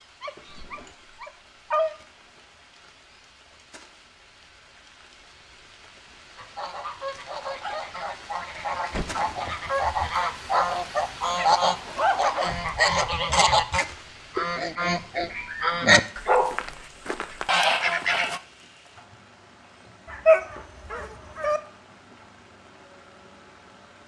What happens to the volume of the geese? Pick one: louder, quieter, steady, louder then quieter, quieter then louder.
louder.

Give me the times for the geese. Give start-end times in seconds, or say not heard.
6.3-18.4.